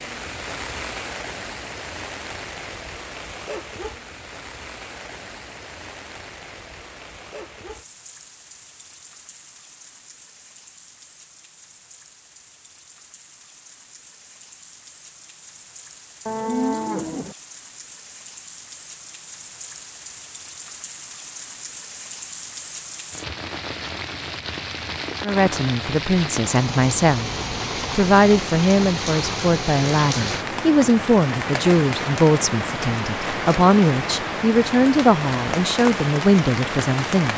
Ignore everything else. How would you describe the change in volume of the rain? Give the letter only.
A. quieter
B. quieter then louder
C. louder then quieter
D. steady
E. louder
B.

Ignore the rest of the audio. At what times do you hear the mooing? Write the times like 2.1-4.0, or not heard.
16.2-17.4.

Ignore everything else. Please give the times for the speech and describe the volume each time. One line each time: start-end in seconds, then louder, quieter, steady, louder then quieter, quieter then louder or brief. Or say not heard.
25.2-37.3 steady.